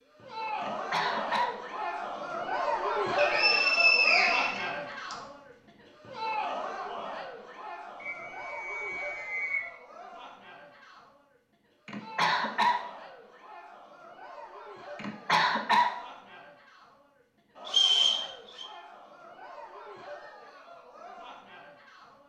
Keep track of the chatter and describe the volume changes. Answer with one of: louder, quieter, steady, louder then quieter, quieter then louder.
quieter.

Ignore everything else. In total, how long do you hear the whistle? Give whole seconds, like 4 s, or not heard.
5 s.